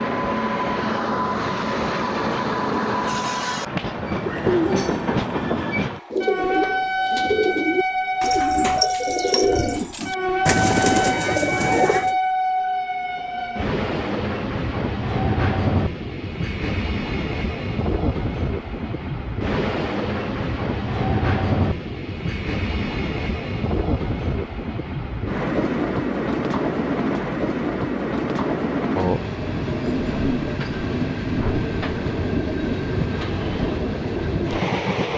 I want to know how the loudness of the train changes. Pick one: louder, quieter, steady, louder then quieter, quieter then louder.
steady.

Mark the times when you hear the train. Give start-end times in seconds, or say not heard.
0.0-35.1.